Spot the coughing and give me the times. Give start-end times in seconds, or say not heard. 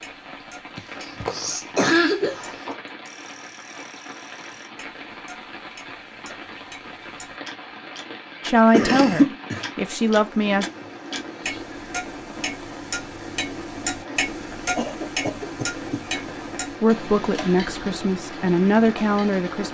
0.8-2.8, 8.7-9.7, 14.8-16.0.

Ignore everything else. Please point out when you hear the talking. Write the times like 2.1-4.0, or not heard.
8.4-10.7, 16.8-19.7.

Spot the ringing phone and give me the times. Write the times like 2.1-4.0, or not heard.
not heard.